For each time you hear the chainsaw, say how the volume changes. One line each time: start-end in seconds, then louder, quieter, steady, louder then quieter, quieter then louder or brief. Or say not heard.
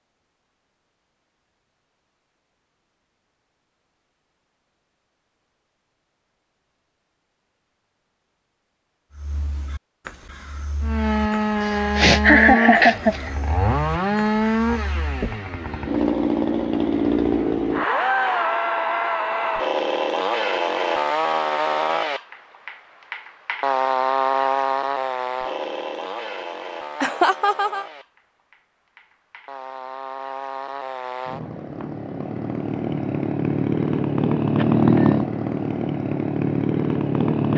10.8-37.5 quieter then louder.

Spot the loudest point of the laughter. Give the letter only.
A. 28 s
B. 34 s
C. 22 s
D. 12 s
D.